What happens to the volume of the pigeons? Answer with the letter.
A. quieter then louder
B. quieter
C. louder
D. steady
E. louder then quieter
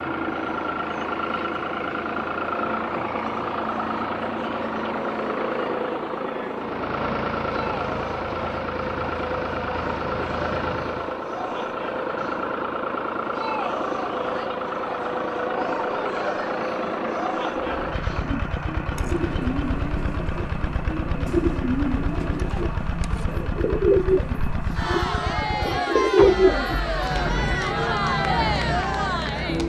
C.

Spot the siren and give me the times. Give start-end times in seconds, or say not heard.
not heard.